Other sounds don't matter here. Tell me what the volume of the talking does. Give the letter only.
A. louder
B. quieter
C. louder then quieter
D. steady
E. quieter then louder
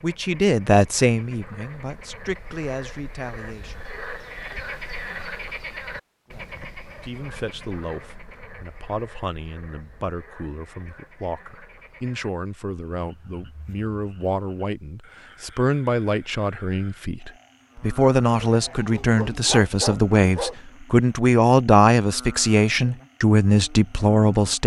E.